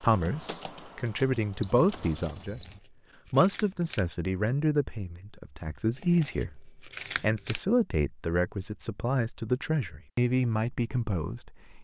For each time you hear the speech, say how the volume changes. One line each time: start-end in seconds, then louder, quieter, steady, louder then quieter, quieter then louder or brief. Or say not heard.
0.0-2.6 brief
3.3-11.7 steady.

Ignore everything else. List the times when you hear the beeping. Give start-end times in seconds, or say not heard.
1.6-2.8.